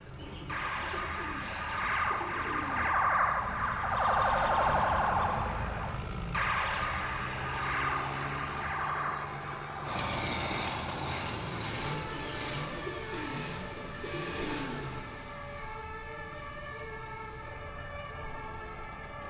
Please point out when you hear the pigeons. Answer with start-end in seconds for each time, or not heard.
0.1-3.1, 12.1-14.9.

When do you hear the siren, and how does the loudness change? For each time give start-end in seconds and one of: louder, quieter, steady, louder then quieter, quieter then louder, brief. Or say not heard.
0.0-19.2 quieter.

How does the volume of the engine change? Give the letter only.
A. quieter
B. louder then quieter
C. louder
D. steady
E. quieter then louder
B.